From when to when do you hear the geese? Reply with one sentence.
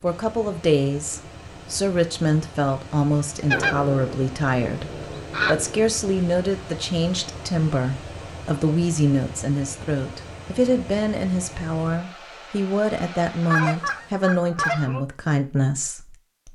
The geese can be heard from 3.5 to 5.8 s and from 13.4 to 15.1 s.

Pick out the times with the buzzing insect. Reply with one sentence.
The buzzing insect can't be heard in this clip.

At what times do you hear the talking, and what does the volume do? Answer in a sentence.
The talking can be heard from 0.0 to 16.5 s, at a steady volume.